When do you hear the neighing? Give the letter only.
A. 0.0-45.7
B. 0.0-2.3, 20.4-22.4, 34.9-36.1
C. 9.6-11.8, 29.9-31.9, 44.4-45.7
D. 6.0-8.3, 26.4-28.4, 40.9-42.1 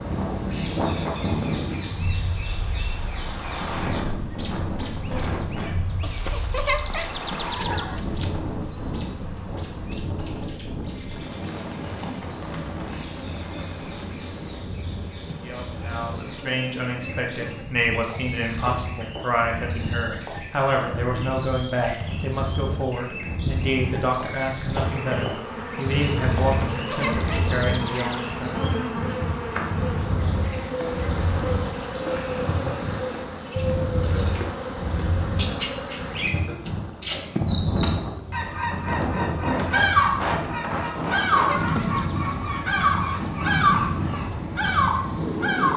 D.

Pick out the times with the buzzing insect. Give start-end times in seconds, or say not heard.
0.0-45.7.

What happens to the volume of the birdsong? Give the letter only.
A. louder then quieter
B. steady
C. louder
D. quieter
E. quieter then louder
C.